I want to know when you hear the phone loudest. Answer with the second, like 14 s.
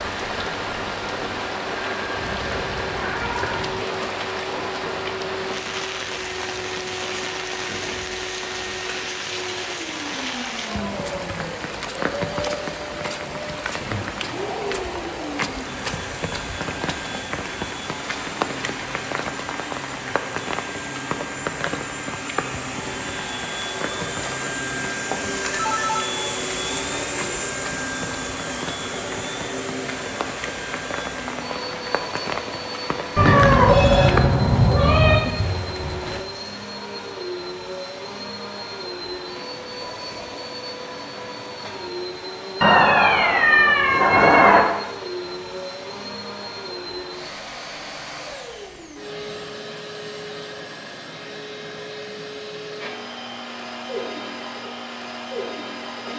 34 s.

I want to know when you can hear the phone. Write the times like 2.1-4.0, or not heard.
25.1-26.1, 33.6-34.2.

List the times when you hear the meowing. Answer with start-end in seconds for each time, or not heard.
2.1-3.8, 33.1-35.2, 42.6-44.6.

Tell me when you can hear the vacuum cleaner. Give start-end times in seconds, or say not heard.
0.0-56.1.